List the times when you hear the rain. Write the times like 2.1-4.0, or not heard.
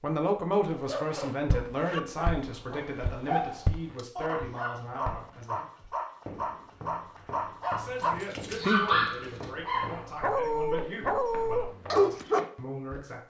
not heard.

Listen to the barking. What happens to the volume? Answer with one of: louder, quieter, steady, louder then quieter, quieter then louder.
louder.